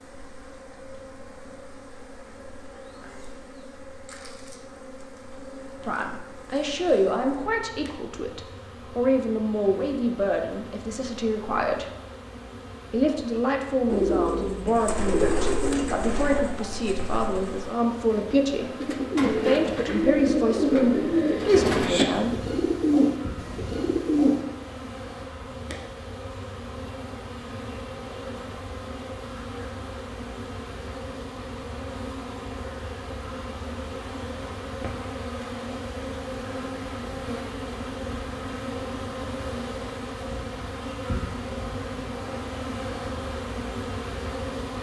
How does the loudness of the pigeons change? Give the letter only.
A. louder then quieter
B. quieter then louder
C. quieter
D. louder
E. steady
B.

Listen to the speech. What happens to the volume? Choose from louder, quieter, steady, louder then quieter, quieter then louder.
steady.